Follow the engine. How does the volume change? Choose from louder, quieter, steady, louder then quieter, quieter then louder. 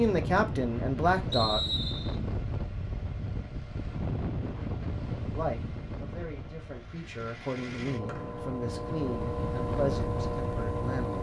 louder.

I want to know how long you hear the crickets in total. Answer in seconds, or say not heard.
not heard.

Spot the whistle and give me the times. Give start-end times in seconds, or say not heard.
1.3-2.1, 8.1-8.6.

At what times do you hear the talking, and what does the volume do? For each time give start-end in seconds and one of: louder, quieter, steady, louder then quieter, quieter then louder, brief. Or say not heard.
0.0-1.6 brief
5.3-11.1 louder.